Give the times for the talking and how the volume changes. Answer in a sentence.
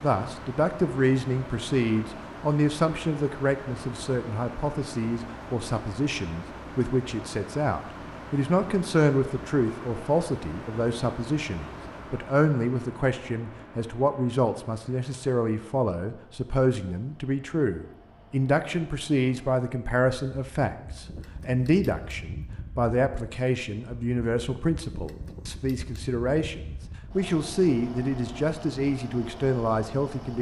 You can hear the talking from 0.0 to 30.3 s, at a steady volume.